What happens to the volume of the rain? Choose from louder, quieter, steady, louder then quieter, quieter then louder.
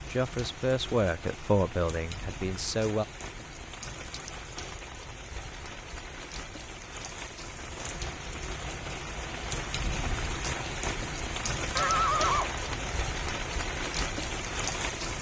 louder.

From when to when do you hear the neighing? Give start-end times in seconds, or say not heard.
11.8-13.0.